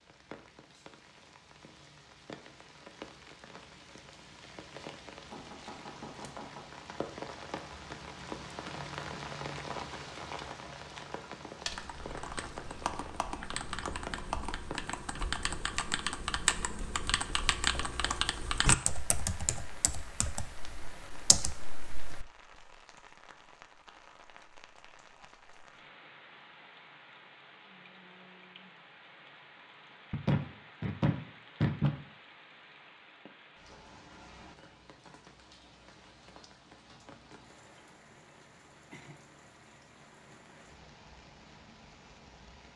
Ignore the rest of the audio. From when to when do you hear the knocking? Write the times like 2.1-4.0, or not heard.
5.3-6.7, 17.6-18.1, 30.1-31.9.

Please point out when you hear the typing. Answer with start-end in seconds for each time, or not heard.
11.7-22.2.